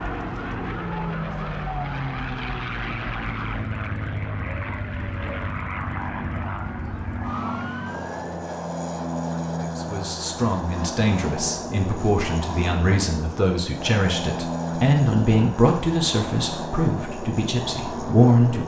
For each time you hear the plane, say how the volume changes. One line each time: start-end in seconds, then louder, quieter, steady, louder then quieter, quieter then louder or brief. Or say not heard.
0.0-18.6 steady.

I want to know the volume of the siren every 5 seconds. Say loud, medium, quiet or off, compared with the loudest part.
loud, loud, off, off.